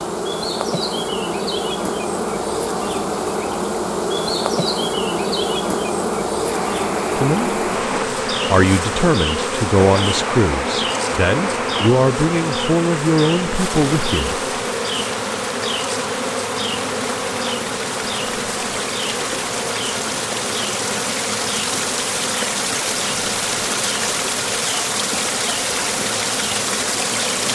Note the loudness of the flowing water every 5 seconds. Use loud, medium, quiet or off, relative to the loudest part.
off, medium, medium, medium, loud, loud.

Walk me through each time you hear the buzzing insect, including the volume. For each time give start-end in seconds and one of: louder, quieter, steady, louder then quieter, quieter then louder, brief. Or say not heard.
0.0-27.4 quieter.